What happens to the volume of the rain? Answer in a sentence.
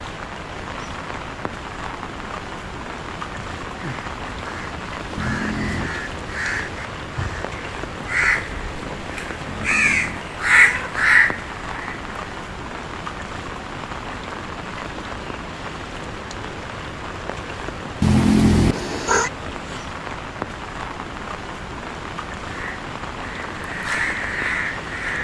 The volume of the rain stays about the same.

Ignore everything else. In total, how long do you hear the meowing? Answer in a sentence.
The meowing can be heard for 4 seconds in total.